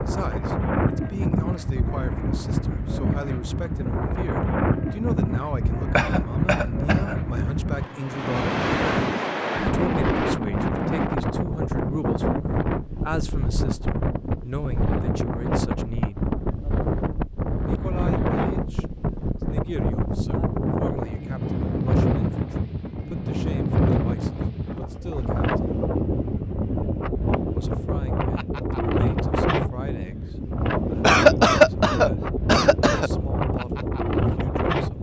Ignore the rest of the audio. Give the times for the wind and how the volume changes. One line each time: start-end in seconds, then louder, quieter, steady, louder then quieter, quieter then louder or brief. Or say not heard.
0.0-34.9 steady.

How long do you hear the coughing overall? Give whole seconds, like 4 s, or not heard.
3 s.